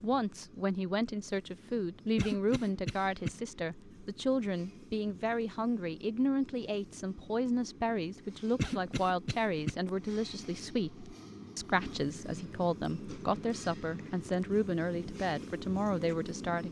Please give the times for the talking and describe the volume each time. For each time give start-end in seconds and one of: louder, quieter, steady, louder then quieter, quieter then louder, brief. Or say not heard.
0.0-16.6 steady.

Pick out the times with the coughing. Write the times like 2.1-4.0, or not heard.
2.1-3.3, 8.6-9.8.